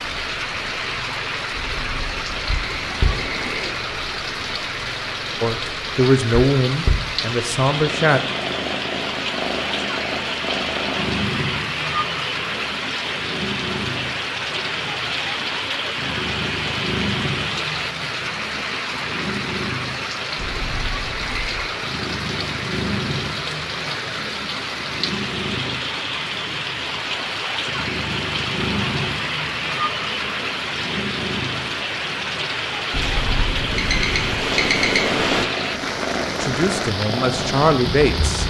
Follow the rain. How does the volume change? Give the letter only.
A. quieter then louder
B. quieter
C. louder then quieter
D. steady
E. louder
D.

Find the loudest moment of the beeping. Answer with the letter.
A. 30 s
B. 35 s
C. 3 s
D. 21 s
B.